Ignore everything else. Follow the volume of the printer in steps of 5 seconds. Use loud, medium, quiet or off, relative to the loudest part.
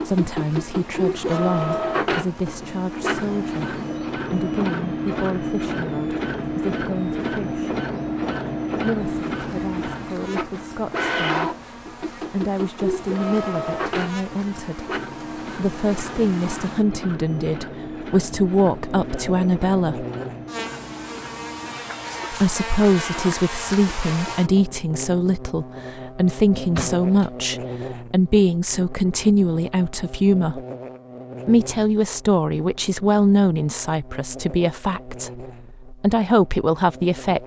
loud, loud, loud, medium, medium, off, off, off.